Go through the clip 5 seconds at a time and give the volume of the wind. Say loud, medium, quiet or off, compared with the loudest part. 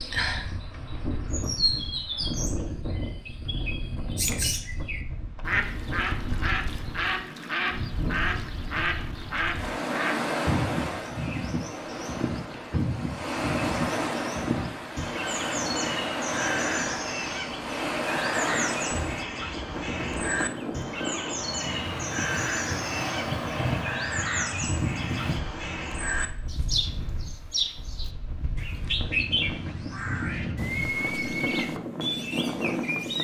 medium, medium, loud, loud, loud, medium, loud.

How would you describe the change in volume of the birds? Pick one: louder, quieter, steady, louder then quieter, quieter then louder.
steady.